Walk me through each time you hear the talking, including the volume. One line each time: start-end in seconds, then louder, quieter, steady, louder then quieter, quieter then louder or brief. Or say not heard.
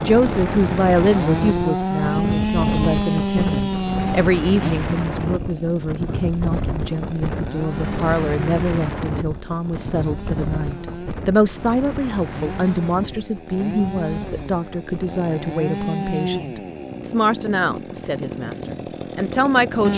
0.0-19.9 steady.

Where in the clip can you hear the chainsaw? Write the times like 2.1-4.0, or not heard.
0.0-19.9.